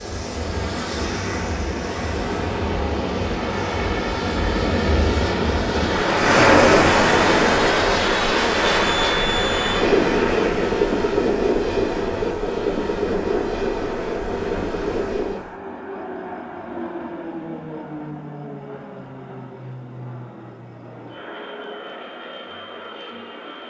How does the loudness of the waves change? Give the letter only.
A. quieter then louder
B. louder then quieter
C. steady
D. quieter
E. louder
B.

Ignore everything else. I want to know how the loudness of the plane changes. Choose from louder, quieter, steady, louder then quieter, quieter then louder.
louder then quieter.